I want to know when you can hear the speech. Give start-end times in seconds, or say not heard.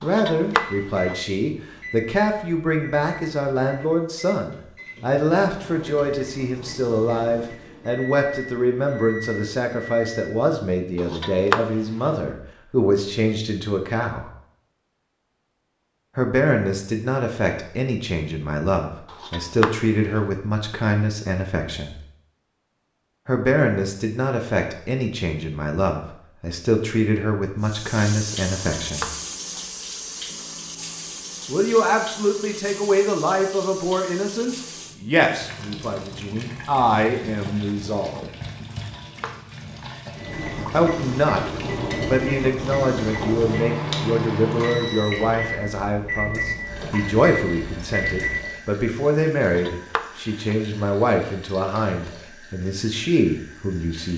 0.0-14.3, 16.1-21.9, 23.2-29.1, 31.4-38.3, 40.7-54.1.